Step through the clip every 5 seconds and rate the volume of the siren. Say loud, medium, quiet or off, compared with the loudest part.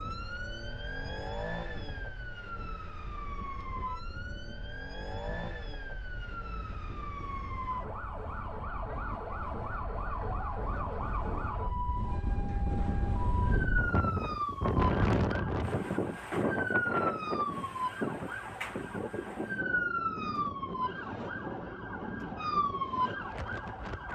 medium, medium, loud, loud, loud.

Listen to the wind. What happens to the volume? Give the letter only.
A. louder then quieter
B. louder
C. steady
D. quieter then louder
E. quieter
A.